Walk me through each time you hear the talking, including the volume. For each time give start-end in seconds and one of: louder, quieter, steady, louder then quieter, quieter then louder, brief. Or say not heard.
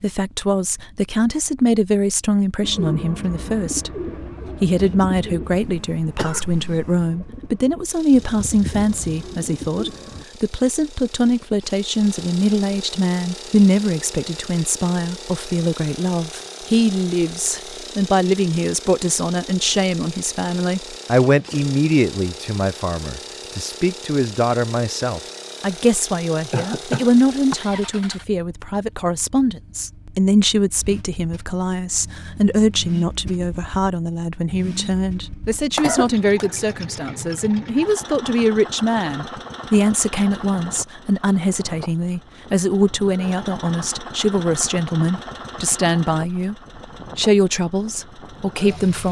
0.0-46.5 steady
47.1-49.0 brief.